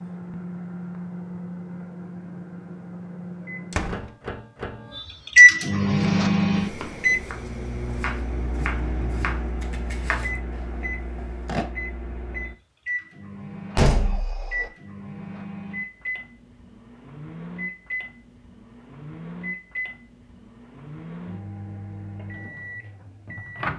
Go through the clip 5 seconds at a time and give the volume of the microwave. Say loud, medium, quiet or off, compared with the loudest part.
quiet, loud, quiet, quiet, quiet.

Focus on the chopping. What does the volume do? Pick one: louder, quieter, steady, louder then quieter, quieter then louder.
louder then quieter.